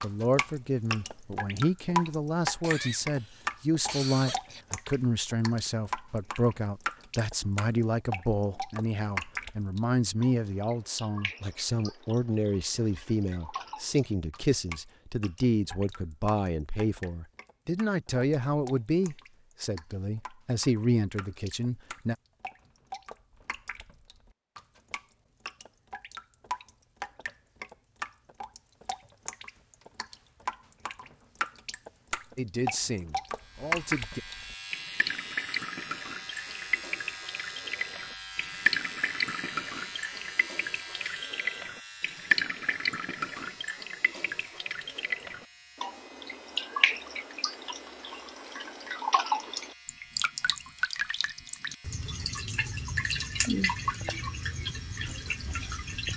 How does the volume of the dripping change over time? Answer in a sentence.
The volume of the dripping goes down, then up.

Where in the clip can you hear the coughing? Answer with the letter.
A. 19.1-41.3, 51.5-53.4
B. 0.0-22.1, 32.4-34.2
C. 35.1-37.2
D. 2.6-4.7
D.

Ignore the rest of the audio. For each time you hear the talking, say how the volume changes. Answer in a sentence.
The talking can be heard from 0.0 to 22.1 s, at a steady volume; and briefly from 32.4 to 34.2 s.